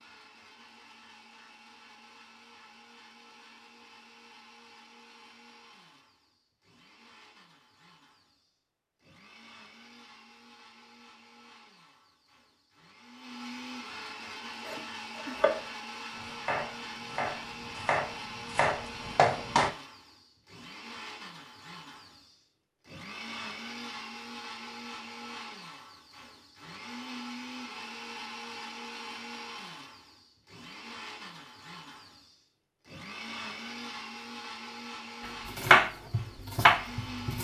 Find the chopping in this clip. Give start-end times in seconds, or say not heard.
14.7-19.7, 35.5-37.3.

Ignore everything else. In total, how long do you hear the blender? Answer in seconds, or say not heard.
37 s.